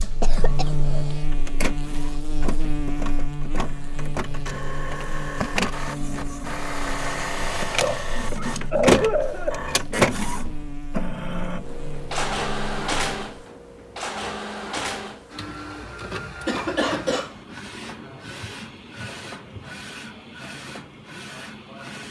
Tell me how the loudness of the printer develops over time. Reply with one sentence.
The volume of the printer goes up, then down.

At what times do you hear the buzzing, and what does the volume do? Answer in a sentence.
You can hear the buzzing from 0.0 to 13.4 s, getting quieter.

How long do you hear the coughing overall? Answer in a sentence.
The coughing can be heard for 4 seconds in total.